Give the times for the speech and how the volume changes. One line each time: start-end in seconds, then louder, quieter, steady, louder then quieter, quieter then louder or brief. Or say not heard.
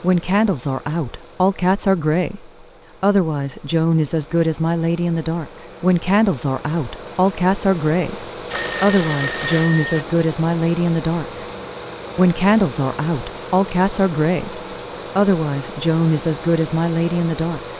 0.0-11.2 steady
12.2-17.6 steady.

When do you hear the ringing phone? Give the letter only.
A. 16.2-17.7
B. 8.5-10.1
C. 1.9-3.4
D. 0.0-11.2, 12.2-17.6
B.